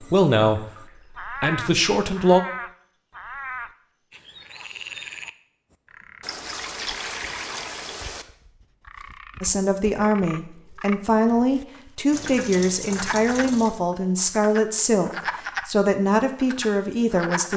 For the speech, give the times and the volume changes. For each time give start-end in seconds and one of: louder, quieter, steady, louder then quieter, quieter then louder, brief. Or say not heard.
0.0-2.4 brief
9.4-17.5 steady.